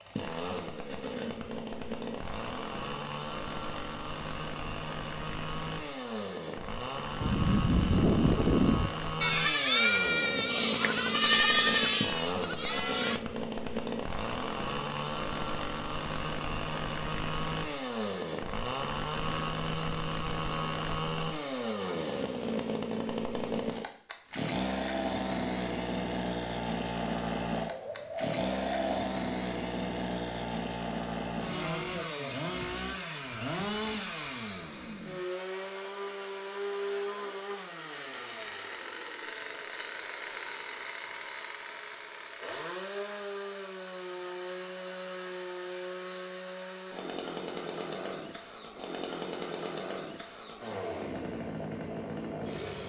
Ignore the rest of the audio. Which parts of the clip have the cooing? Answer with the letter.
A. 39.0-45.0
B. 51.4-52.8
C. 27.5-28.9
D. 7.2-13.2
C.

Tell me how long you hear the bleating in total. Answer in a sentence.
You can hear the bleating for 6 seconds altogether.